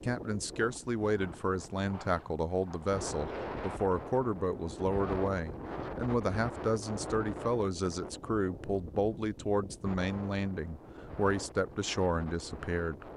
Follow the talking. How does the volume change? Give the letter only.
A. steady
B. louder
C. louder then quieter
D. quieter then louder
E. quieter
A.